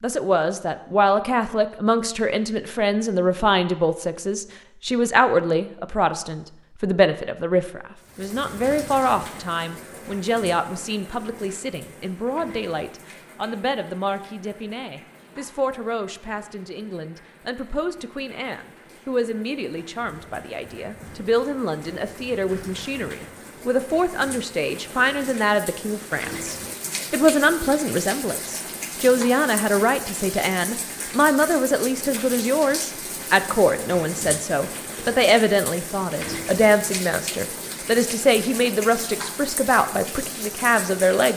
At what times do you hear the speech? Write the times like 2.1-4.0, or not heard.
0.0-41.3.